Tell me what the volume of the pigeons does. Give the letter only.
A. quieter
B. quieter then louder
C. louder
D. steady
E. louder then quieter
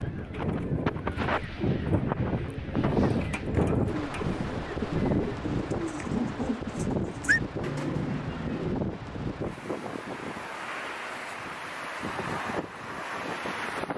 C.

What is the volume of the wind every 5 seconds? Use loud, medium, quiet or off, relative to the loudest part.
loud, loud, medium.